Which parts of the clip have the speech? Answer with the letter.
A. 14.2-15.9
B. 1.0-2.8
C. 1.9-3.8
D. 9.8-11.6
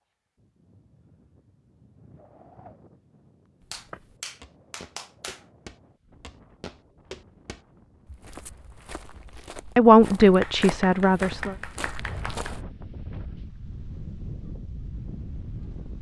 D.